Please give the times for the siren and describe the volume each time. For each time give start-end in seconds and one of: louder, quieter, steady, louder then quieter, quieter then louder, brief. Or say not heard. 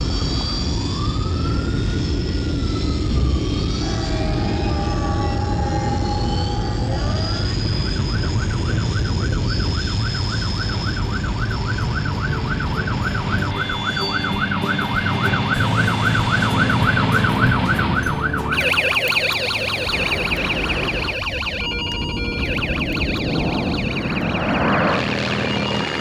0.0-25.9 louder then quieter.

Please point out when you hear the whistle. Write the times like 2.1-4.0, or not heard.
not heard.